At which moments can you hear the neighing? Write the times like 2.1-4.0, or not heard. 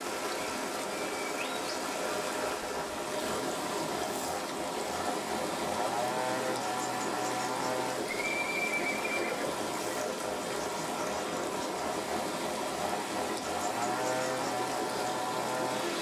8.1-9.7.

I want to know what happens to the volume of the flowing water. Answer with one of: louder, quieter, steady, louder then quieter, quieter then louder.
steady.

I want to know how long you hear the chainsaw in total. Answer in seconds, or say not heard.
16 s.